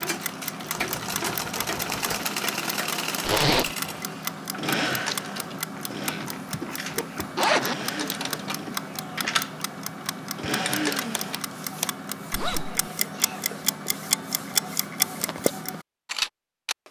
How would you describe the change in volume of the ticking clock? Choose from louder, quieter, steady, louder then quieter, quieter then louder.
louder.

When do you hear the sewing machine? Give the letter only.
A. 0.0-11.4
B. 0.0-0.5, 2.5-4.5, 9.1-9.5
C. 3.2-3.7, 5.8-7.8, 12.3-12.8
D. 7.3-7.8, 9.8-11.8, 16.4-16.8
A.